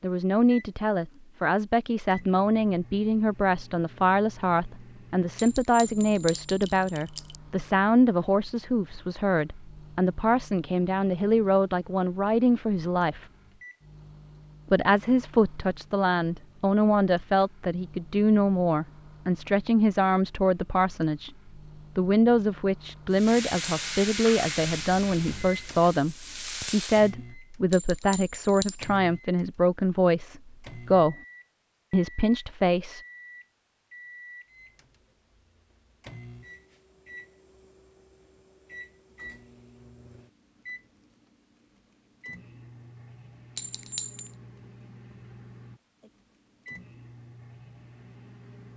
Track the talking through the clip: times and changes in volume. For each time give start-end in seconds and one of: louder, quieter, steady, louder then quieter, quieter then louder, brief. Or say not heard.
0.0-13.2 steady
14.7-21.3 steady
21.9-31.1 steady
31.9-33.0 brief.